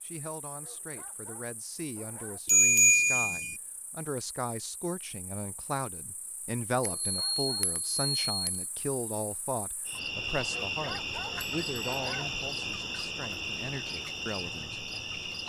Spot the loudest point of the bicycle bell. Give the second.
3 s.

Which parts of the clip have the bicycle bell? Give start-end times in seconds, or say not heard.
2.5-3.5, 6.8-8.7, 11.3-12.0.